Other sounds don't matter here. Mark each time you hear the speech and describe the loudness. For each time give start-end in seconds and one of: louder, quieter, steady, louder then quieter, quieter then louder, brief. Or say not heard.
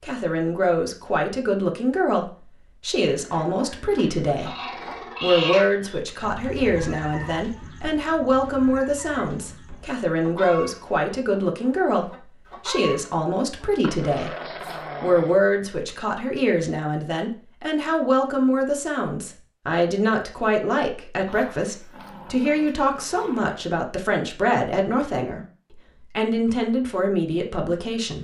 0.0-4.5 steady
5.2-14.3 steady
15.0-28.1 steady.